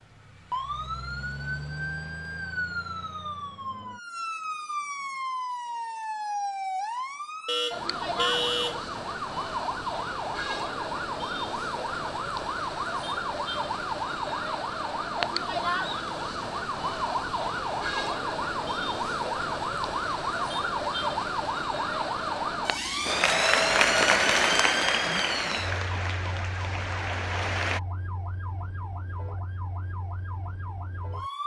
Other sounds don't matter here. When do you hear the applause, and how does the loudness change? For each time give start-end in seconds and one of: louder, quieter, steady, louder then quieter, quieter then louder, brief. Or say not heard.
23.1-27.8 quieter.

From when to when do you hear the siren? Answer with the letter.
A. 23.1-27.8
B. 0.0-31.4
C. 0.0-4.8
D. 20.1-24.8
B.